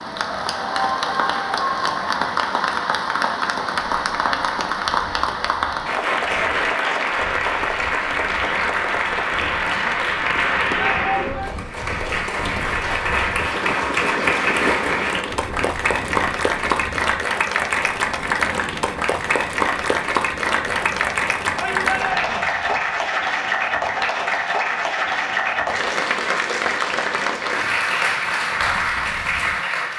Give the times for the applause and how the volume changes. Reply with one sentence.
The applause can be heard from 0.0 to 29.9 s, at a steady volume.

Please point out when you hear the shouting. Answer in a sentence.
You can hear the shouting from 10.8 to 11.5 s and from 21.6 to 22.4 s.